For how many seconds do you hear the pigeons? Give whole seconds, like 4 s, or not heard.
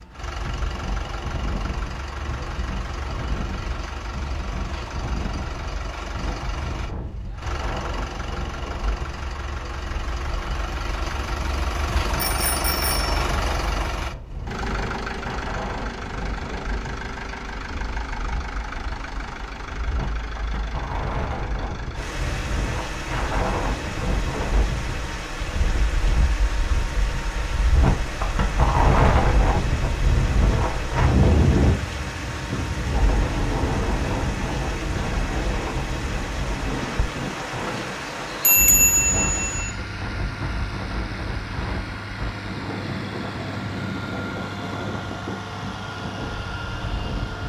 not heard.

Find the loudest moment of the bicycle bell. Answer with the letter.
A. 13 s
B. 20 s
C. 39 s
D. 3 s
C.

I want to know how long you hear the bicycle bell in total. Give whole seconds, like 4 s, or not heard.
2 s.